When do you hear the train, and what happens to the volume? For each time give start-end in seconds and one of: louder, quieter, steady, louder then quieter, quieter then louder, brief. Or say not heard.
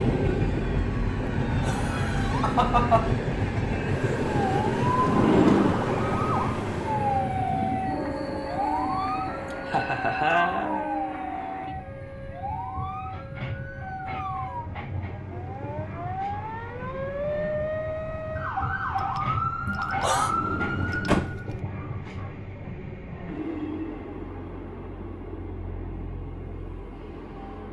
0.0-27.6 quieter.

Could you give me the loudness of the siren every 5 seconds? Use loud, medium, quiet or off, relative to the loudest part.
loud, loud, medium, loud, loud, off.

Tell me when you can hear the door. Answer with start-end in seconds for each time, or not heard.
5.0-5.8, 20.1-21.3.